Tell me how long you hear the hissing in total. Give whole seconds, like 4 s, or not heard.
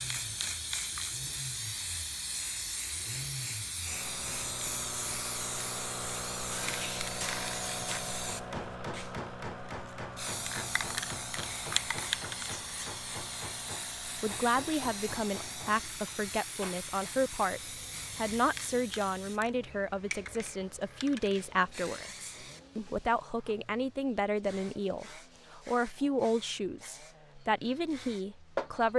29 s.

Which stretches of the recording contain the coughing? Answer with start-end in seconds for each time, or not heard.
not heard.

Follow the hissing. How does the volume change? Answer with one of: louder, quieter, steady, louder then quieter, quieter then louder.
quieter.